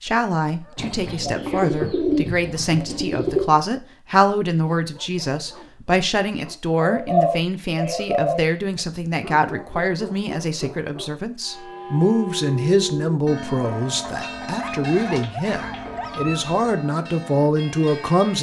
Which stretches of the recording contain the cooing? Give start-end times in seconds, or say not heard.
0.8-3.5, 6.8-8.4, 13.9-16.4.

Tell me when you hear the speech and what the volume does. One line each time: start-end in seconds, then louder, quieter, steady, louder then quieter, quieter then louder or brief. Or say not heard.
0.0-18.3 steady.